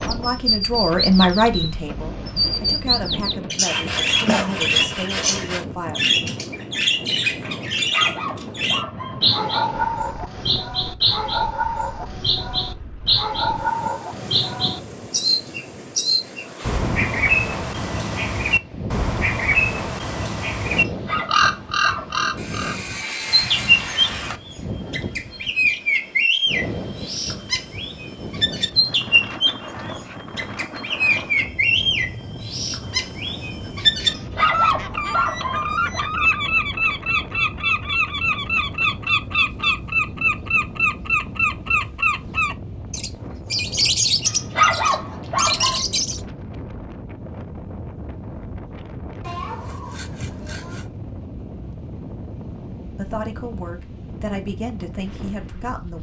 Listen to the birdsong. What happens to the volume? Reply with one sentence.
The volume of the birdsong stays about the same.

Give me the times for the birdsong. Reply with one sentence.
You can hear the birdsong from 0.0 to 46.2 s.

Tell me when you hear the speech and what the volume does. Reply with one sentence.
The speech can be heard from 0.1 to 6.0 s, getting quieter; and briefly from 53.0 to 55.9 s.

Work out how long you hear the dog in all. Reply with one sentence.
The dog can be heard for 7 seconds in total.